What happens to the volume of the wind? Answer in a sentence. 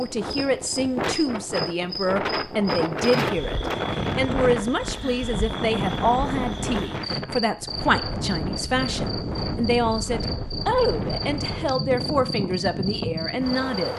The loudness of the wind stays about the same.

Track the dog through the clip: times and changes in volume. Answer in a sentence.
You can't hear the dog here.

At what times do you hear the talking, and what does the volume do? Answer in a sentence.
The talking can be heard from 0.0 to 13.9 s, at a steady volume.